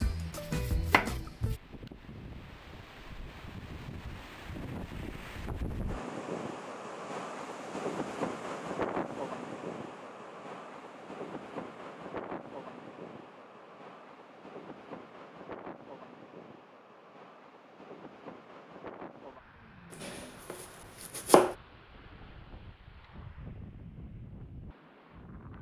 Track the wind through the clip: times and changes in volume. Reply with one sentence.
The wind can be heard from 0.0 to 25.5 s, getting louder then quieter.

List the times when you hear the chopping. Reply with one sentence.
You can hear the chopping from 0.0 to 1.6 s and from 20.0 to 21.6 s.